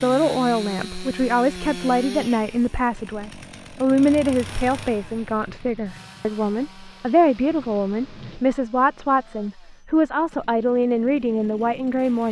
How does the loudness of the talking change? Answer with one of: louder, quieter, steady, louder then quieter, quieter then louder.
steady.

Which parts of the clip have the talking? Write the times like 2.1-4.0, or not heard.
0.0-12.2.